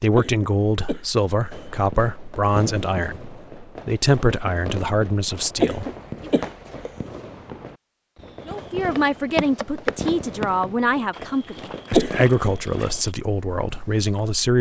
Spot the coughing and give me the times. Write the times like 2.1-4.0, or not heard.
0.1-1.8, 5.5-6.9, 11.9-12.3.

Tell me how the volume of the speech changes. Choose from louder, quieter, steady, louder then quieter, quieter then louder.
steady.